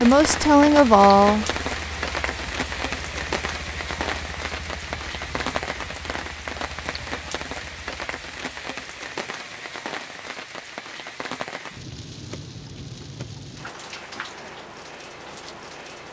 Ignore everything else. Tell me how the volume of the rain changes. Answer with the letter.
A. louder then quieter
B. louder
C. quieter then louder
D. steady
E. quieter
E.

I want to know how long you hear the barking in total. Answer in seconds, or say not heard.
not heard.